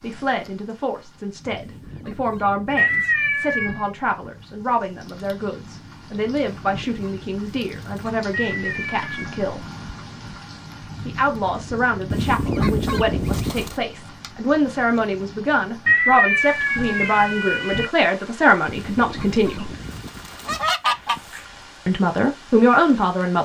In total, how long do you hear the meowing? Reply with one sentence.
You can hear the meowing for 4 seconds altogether.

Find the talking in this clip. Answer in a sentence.
You can hear the talking from 0.0 to 9.7 s, from 11.1 to 19.7 s and from 21.9 to 23.4 s.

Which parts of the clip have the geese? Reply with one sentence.
You can hear the geese from 1.5 to 3.1 s, from 6.4 to 8.2 s, from 12.1 to 13.8 s and from 18.6 to 21.4 s.